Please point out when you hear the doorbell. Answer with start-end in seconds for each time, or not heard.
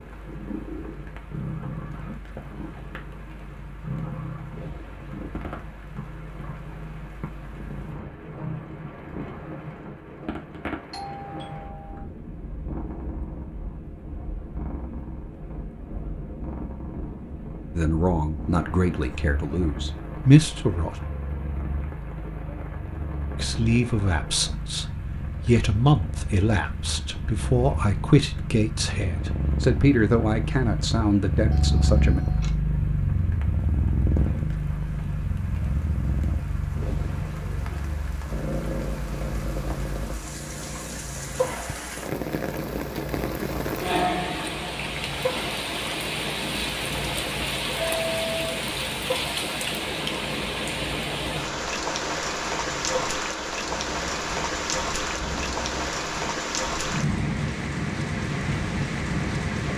10.9-12.1, 31.5-32.5, 47.8-48.6.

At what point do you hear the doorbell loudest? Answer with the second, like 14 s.
48 s.